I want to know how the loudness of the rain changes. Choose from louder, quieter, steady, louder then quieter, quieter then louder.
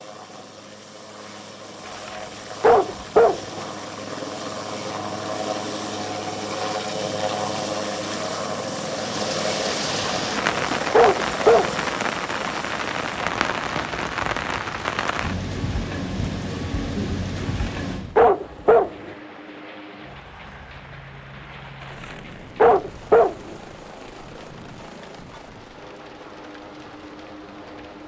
quieter.